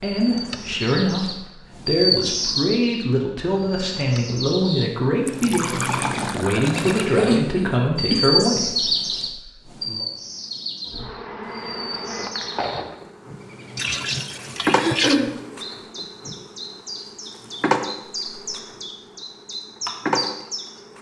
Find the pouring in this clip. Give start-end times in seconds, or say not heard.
5.2-7.1, 13.8-15.2.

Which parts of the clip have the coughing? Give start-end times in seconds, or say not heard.
7.1-8.2, 14.8-15.3.